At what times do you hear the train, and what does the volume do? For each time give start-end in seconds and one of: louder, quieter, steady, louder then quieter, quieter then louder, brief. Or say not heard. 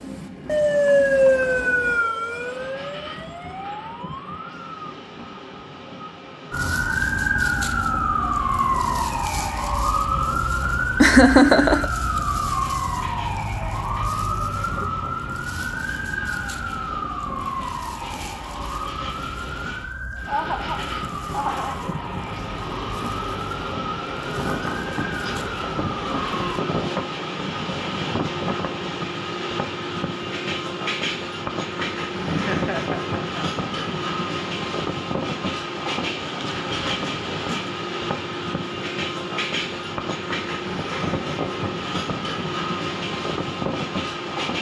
0.0-44.5 louder.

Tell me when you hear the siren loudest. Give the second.
1 s.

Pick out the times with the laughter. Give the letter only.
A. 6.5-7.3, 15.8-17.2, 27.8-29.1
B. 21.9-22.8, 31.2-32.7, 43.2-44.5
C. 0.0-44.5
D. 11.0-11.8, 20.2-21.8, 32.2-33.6
D.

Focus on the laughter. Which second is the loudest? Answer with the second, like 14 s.
11 s.